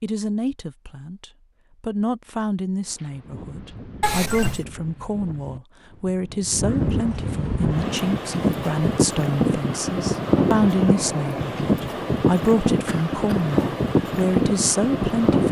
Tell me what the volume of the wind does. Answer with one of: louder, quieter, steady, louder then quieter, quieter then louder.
louder.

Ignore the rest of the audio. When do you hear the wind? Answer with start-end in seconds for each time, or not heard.
2.9-15.4.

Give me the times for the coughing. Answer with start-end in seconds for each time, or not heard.
4.0-4.7, 12.8-13.4.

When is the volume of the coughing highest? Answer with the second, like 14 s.
4 s.